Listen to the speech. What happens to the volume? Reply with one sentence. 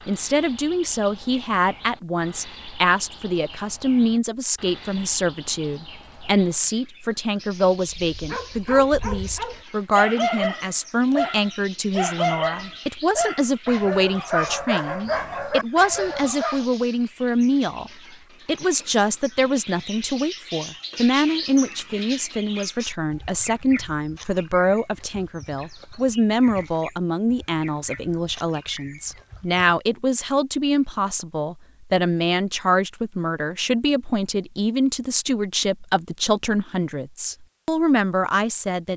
The volume of the speech stays about the same.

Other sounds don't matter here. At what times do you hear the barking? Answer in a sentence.
You can hear the barking from 7.8 to 16.6 s.